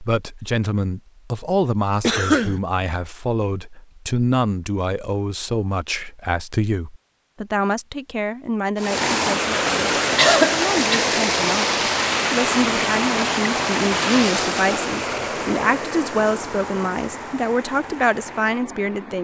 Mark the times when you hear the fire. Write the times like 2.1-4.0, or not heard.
not heard.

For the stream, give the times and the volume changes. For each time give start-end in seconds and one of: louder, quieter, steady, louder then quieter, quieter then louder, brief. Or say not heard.
8.8-19.1 quieter.